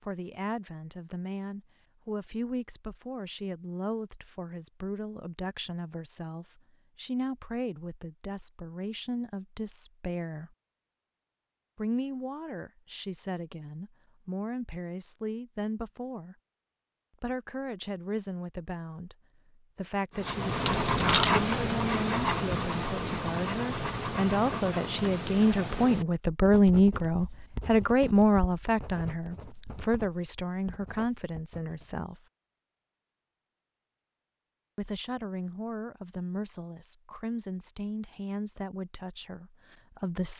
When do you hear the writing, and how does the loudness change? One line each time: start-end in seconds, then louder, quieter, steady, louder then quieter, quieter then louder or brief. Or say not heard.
20.1-31.9 quieter.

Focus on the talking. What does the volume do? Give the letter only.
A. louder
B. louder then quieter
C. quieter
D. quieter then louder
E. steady
B.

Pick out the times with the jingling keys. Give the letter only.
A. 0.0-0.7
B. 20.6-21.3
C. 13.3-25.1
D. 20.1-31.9
B.